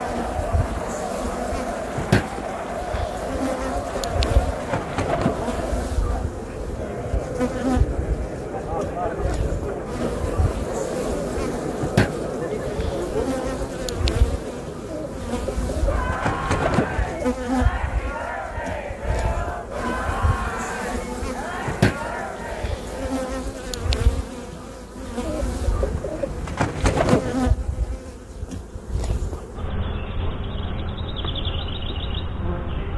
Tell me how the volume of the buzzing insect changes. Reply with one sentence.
The loudness of the buzzing insect stays about the same.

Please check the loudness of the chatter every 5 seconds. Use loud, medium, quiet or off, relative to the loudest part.
loud, loud, loud, loud, loud, off, off.